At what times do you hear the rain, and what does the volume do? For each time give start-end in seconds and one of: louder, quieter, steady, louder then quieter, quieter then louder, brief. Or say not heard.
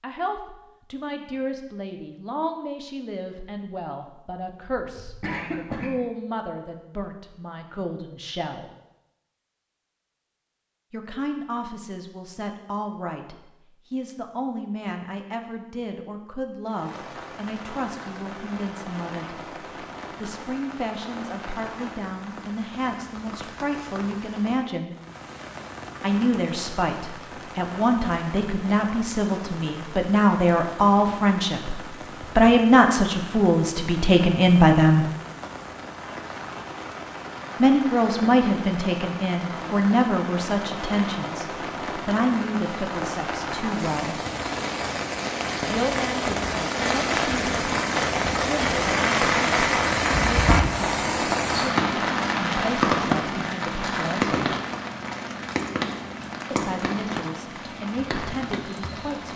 16.6-59.3 louder.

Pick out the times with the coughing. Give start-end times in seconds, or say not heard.
4.8-6.0.